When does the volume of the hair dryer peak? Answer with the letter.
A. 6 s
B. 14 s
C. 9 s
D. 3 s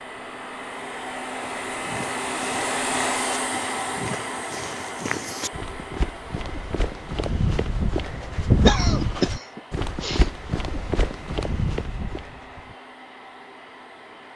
D.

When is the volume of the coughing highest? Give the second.
9 s.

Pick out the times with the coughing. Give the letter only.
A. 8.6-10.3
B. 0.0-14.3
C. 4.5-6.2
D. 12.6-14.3
A.